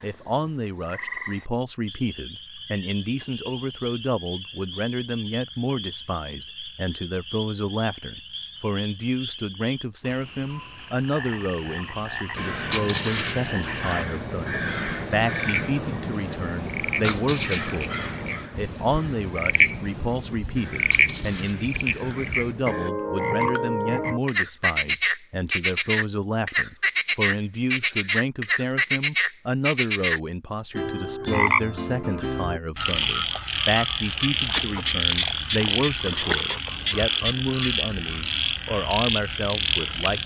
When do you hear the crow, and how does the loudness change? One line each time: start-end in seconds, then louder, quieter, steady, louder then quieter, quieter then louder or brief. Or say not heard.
12.3-22.9 quieter.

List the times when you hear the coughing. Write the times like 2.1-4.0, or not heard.
not heard.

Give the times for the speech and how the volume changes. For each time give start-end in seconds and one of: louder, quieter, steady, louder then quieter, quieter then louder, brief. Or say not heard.
0.0-40.2 steady.